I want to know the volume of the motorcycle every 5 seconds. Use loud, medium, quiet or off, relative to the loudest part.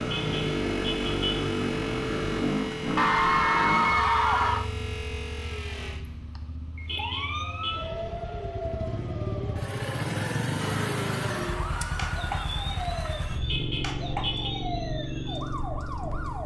loud, medium, loud, medium.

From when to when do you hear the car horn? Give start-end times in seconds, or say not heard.
0.1-1.4, 6.8-7.9, 13.4-14.5.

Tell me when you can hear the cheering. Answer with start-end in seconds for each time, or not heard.
3.0-4.7, 10.6-12.4.